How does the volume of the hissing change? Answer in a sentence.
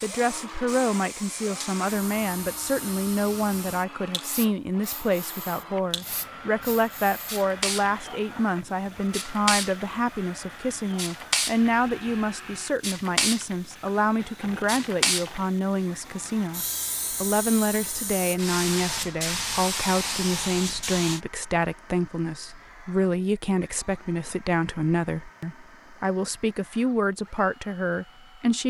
The volume of the hissing goes up.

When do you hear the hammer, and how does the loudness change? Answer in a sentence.
You can't hear the hammer here.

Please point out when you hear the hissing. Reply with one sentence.
You can hear the hissing from 0.0 to 21.2 s.